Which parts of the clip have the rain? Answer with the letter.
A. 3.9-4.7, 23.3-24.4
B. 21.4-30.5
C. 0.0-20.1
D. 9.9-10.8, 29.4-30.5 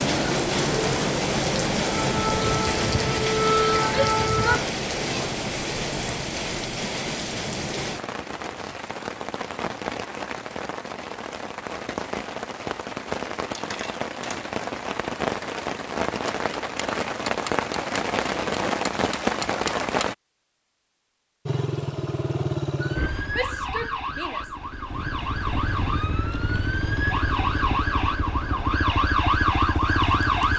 C.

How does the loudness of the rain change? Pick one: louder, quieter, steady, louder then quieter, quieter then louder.
quieter then louder.